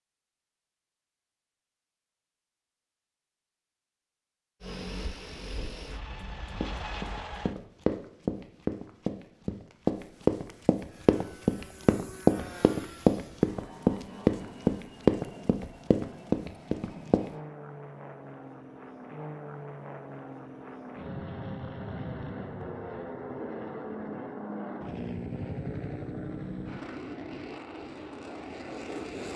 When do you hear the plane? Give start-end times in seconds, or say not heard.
4.6-7.5, 10.8-29.3.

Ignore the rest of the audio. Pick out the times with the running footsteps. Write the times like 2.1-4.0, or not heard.
6.6-17.2.